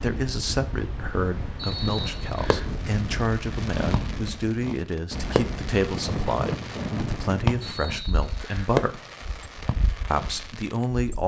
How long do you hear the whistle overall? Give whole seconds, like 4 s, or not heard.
2 s.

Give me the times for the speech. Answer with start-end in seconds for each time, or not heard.
0.0-9.0, 10.1-11.2.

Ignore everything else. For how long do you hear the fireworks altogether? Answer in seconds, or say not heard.
9 s.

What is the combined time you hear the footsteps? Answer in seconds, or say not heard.
not heard.